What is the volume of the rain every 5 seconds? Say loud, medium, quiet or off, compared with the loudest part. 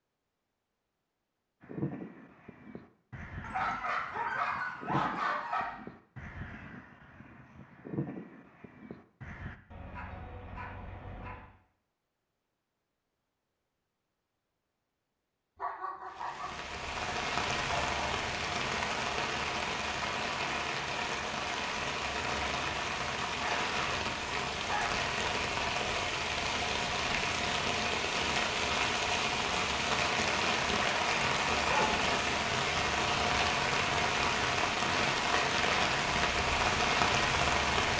off, off, off, medium, medium, loud, loud, loud.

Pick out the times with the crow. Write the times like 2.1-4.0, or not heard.
1.6-9.6.